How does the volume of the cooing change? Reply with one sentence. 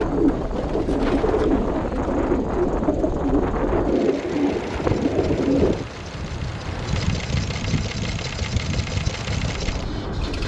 The loudness of the cooing stays about the same.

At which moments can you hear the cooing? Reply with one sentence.
You can hear the cooing from 0.0 to 5.8 s.